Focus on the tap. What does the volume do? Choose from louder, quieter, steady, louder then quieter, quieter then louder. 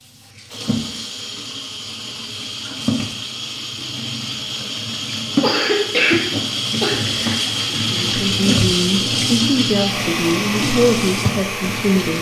louder.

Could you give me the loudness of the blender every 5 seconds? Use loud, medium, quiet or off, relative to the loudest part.
medium, loud, loud.